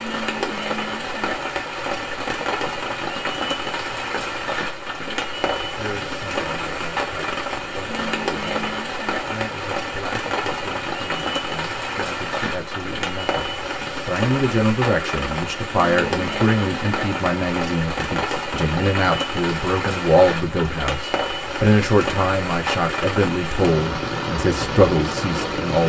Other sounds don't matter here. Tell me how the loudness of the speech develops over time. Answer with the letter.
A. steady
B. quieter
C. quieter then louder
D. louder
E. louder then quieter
D.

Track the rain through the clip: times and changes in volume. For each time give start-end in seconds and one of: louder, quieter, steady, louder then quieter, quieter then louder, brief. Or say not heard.
0.0-25.8 steady.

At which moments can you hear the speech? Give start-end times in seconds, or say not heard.
5.6-25.8.